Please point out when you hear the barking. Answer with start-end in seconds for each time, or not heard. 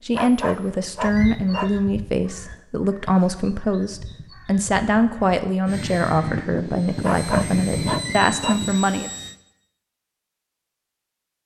0.1-1.8, 7.0-8.7.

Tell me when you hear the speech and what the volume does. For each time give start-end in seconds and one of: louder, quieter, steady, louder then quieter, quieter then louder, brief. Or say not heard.
0.1-9.1 steady.